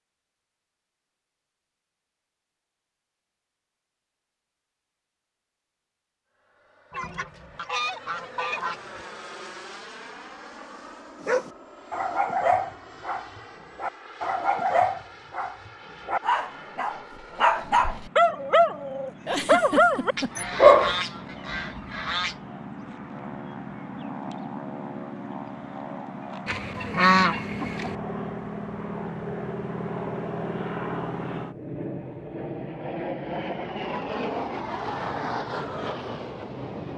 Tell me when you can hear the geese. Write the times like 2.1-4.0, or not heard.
6.9-9.1, 20.1-22.4, 26.4-27.9.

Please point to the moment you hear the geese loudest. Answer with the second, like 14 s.
27 s.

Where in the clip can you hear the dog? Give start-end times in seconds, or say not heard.
11.2-20.9.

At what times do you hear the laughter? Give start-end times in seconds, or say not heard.
19.2-20.4.